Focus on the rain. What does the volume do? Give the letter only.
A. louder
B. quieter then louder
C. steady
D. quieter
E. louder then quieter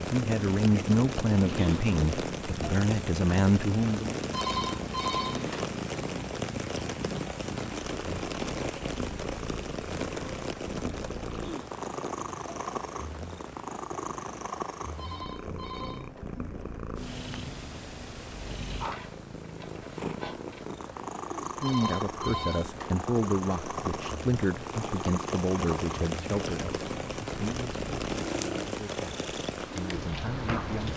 B.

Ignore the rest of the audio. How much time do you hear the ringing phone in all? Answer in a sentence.
You can hear the ringing phone for 4 seconds altogether.